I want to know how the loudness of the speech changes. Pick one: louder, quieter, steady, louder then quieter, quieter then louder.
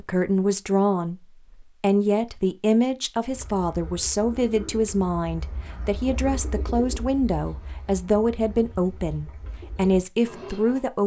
steady.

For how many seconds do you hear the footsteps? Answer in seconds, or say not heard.
not heard.